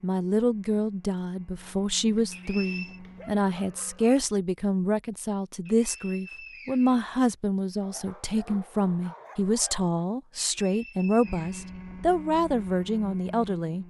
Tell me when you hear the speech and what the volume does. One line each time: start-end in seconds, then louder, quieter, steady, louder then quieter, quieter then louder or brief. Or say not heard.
0.0-13.8 steady.